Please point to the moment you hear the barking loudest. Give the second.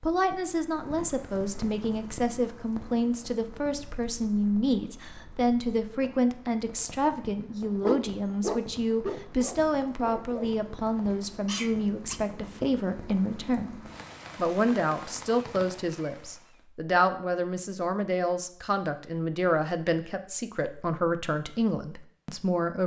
8 s.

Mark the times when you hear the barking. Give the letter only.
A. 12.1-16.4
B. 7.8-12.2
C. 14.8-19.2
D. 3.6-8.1
B.